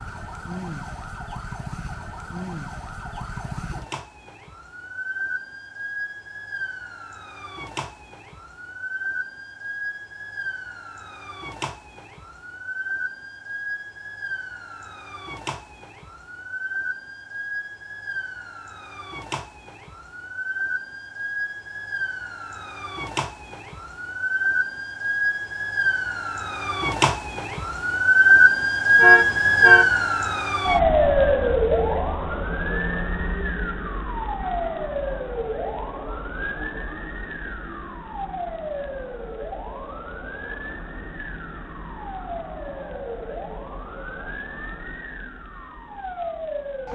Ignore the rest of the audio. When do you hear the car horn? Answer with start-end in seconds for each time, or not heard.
28.9-29.9.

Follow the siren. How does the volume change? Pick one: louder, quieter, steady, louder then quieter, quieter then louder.
louder then quieter.